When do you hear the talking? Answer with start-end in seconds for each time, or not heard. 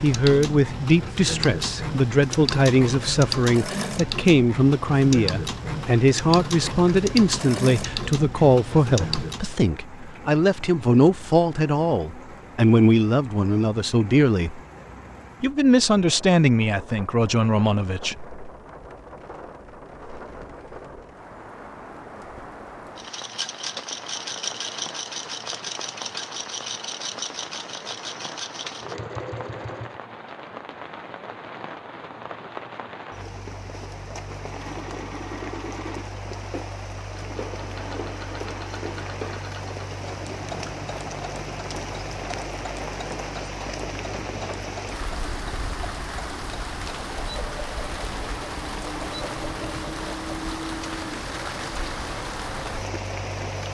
0.0-14.6, 15.4-18.4.